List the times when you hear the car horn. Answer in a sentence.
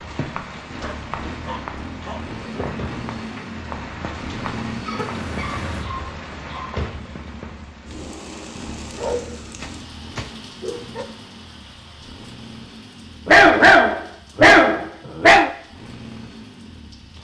The car horn can be heard from 5.0 to 5.8 s.